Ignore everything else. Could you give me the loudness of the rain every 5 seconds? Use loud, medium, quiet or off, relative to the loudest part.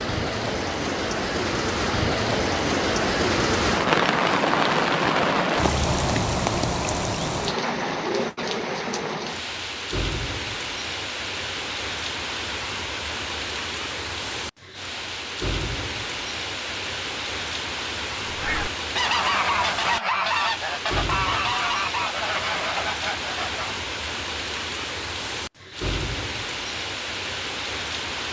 loud, loud, medium, medium, medium, medium.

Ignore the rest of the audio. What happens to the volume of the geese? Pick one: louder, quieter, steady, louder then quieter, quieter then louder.
quieter.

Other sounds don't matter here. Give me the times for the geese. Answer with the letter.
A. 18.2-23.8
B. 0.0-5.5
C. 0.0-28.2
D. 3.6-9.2
A.